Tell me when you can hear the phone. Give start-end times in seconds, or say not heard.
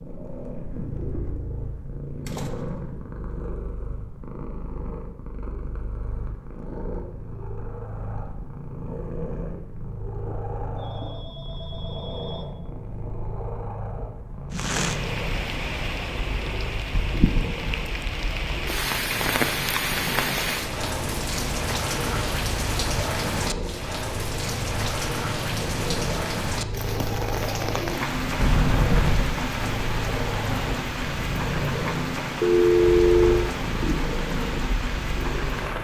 10.8-12.5, 32.4-33.5.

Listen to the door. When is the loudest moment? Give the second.
29 s.